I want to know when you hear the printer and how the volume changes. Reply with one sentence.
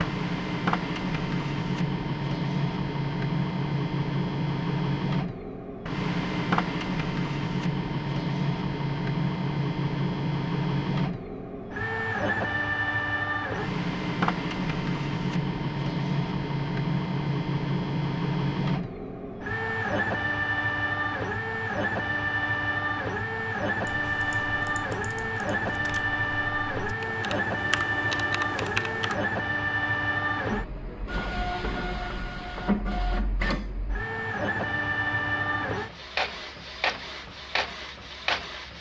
You can hear the printer from 0.0 to 38.7 s, at a steady volume.